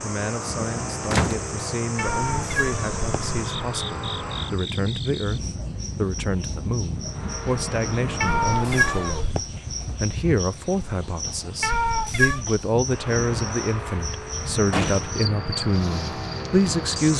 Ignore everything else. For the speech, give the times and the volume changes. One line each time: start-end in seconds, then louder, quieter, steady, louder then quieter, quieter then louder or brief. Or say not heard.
0.0-17.1 louder.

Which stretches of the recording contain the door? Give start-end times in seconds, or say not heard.
1.1-1.5, 14.7-15.2.